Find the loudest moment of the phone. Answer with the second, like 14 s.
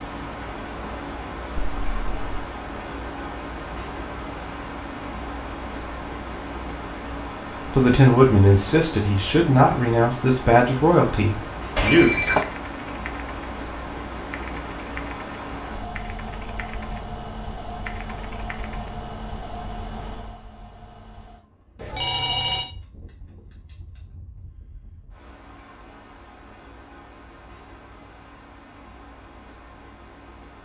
12 s.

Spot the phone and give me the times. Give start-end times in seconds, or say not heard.
1.6-2.5, 11.8-12.4, 21.8-22.7.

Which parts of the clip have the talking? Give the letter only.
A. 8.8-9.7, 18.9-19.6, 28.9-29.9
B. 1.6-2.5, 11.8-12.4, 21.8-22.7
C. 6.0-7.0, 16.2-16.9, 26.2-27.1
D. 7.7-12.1
D.